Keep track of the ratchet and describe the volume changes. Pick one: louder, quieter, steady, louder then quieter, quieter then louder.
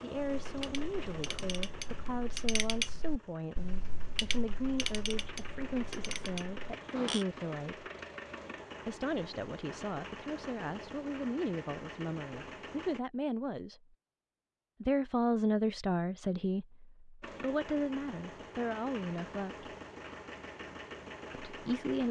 louder then quieter.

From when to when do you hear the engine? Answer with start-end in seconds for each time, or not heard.
0.0-13.0, 17.2-22.0.